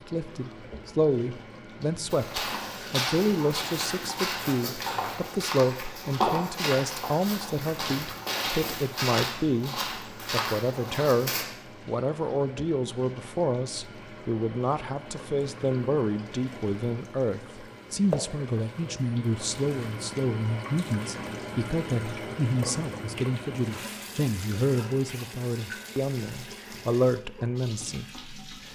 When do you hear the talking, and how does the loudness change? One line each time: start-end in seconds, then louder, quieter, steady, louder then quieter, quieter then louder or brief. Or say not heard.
0.1-28.7 steady.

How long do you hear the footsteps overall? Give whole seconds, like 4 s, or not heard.
9 s.